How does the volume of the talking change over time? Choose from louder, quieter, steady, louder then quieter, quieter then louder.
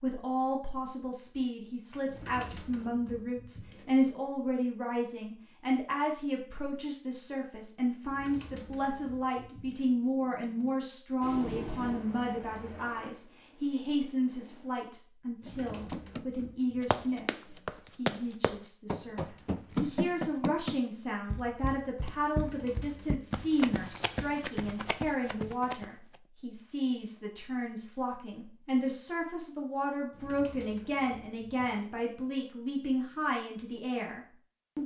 steady.